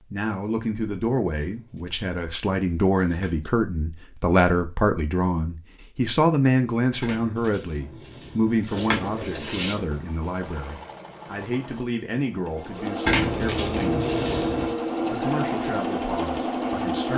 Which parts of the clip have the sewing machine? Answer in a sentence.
The sewing machine can be heard from 8.7 to 17.1 s.